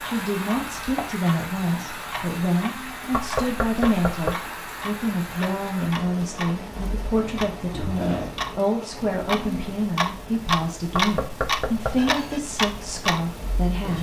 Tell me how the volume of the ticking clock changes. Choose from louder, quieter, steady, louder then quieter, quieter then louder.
louder.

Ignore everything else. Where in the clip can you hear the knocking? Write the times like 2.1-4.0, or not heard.
3.1-4.4, 10.9-12.2.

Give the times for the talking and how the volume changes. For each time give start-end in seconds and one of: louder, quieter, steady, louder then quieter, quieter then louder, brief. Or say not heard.
0.0-13.9 steady.